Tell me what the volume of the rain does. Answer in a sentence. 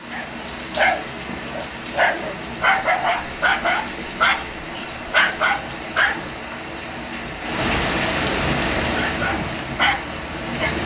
The volume of the rain goes up.